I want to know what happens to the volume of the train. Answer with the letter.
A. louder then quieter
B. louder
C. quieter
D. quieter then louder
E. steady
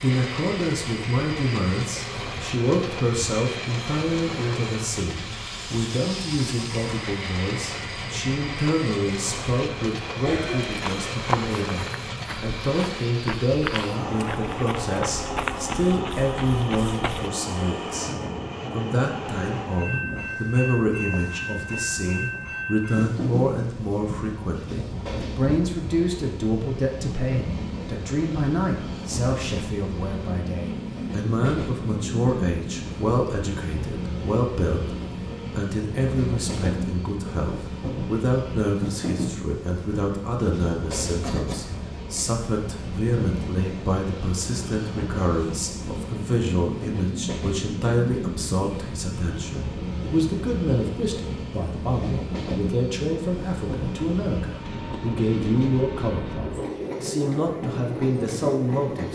E.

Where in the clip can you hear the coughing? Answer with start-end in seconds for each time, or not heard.
10.2-10.8, 41.2-42.2.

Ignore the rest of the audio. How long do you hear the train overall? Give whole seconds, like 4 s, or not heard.
59 s.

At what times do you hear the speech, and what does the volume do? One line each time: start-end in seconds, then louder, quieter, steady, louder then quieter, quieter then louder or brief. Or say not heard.
0.0-59.0 steady.